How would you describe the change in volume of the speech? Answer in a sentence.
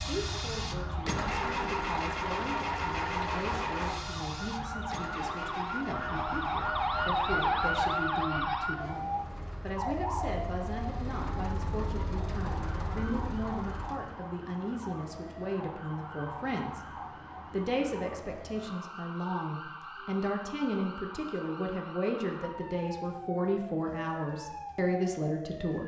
The volume of the speech goes up.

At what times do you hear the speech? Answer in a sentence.
You can hear the speech from 0.0 to 16.8 s and from 17.5 to 25.8 s.